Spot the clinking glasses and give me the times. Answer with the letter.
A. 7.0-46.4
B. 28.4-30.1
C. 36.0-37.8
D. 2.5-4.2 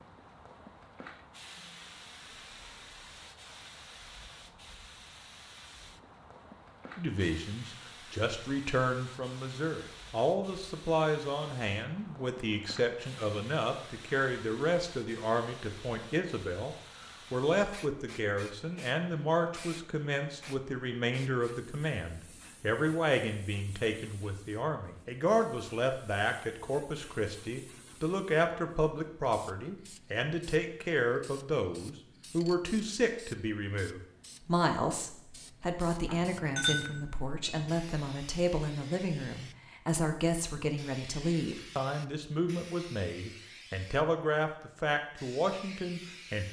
C.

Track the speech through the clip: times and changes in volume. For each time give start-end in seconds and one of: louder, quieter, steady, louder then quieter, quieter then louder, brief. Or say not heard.
7.0-46.4 steady.